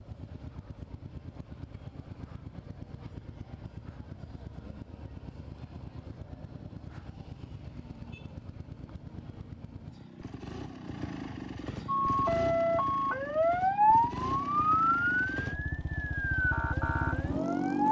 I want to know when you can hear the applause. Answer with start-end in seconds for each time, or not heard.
not heard.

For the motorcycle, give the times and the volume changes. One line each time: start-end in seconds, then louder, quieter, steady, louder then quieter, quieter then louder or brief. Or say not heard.
0.0-17.8 louder.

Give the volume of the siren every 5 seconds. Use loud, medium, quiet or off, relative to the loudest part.
off, off, loud, medium.